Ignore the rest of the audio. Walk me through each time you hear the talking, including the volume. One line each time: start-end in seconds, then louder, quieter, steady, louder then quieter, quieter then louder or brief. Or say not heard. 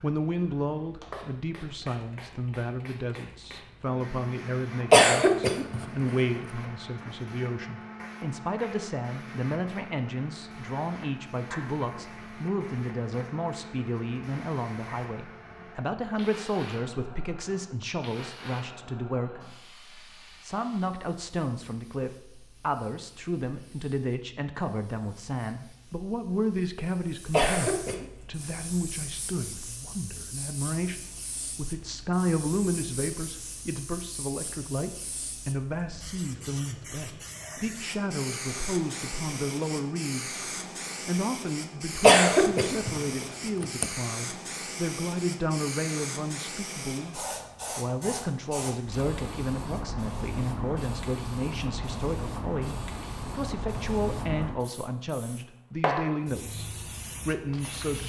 0.0-40.4 steady
41.0-58.0 steady.